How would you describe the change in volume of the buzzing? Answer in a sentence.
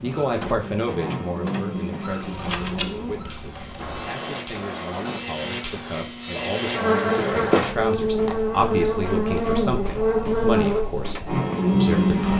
The loudness of the buzzing goes down, then up.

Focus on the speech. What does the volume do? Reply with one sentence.
The volume of the speech goes down, then up.